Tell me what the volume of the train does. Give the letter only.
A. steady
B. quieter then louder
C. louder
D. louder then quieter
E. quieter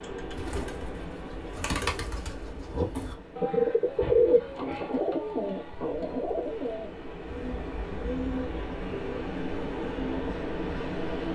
B.